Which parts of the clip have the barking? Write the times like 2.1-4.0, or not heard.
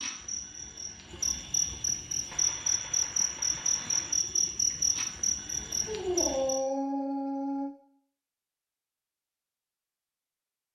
5.8-7.7.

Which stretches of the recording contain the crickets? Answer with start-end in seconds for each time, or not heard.
0.0-6.6.